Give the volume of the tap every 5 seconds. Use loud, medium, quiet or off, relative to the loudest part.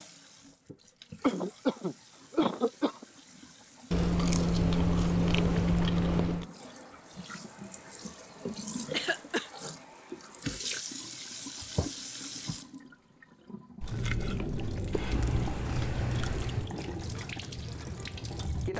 quiet, medium, loud, loud.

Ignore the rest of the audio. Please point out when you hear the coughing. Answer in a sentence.
You can hear the coughing from 1.2 to 3.0 s, from 8.9 to 9.5 s and from 14.9 to 16.7 s.